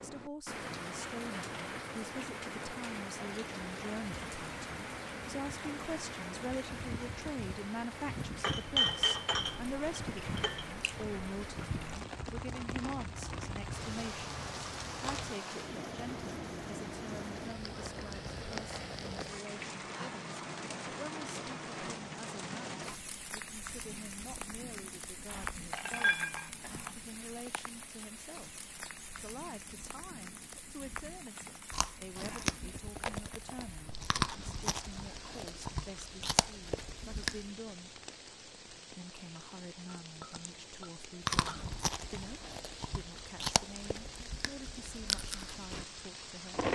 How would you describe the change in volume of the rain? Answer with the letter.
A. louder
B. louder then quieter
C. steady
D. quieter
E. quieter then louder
D.